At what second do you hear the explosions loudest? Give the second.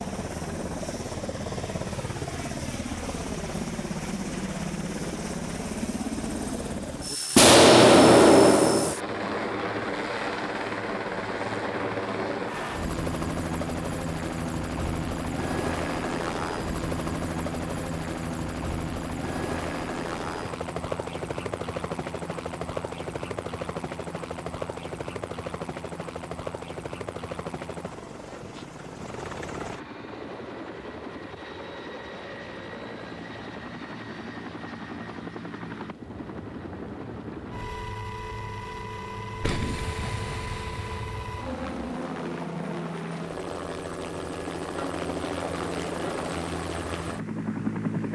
8 s.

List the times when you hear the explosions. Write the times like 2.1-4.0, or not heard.
7.3-8.9, 39.4-41.9.